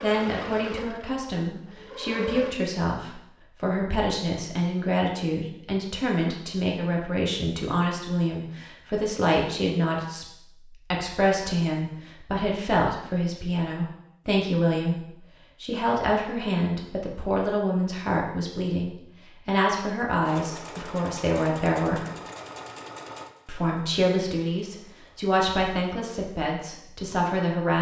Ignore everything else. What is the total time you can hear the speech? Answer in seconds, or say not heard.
26 s.